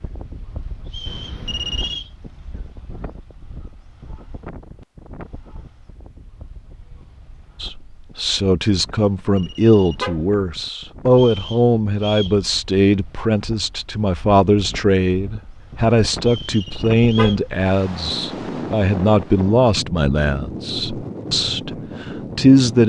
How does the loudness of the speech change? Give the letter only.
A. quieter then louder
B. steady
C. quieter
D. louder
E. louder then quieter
B.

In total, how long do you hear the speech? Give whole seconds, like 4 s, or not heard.
15 s.